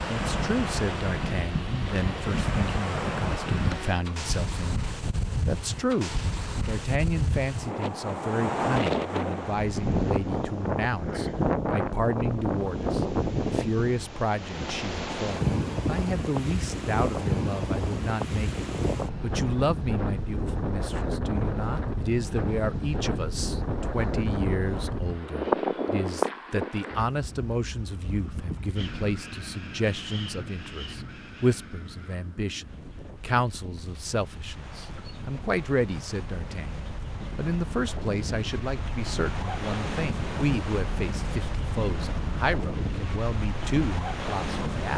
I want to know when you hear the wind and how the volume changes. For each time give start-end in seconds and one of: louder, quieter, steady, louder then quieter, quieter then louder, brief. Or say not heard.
0.0-44.9 quieter then louder.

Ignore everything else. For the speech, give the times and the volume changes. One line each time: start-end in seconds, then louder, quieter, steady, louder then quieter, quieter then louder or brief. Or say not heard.
0.1-44.9 steady.